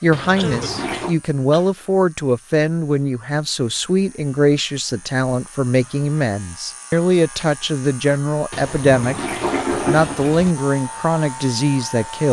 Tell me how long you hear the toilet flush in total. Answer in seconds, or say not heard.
3 s.